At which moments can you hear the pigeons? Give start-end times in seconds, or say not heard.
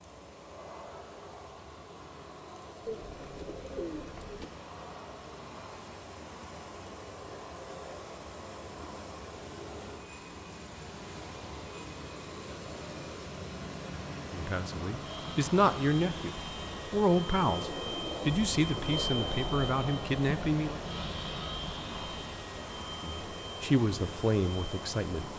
2.9-4.5, 17.4-19.2.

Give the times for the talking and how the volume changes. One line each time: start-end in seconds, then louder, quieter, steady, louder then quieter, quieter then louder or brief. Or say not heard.
14.3-20.8 steady
23.0-25.3 brief.